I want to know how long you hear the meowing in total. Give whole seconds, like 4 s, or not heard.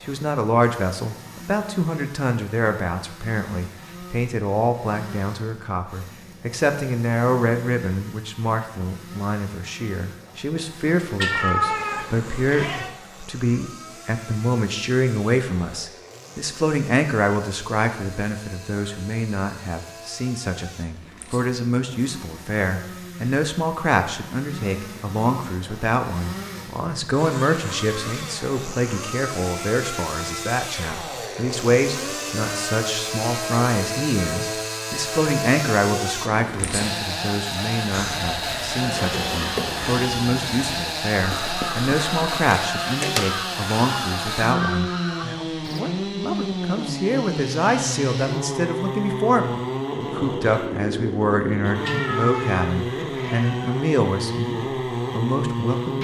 4 s.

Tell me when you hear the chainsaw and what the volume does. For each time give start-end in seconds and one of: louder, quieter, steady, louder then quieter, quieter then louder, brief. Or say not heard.
0.0-56.0 louder.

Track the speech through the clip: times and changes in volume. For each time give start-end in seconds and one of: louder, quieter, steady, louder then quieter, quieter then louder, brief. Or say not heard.
0.0-49.5 steady
50.1-56.0 steady.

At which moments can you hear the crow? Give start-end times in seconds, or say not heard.
37.9-45.9.